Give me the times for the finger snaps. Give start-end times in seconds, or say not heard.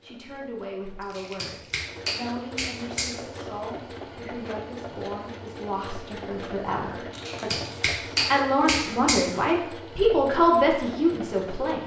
1.1-3.1, 7.2-9.2.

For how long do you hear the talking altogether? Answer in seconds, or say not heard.
12 s.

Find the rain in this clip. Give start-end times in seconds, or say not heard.
not heard.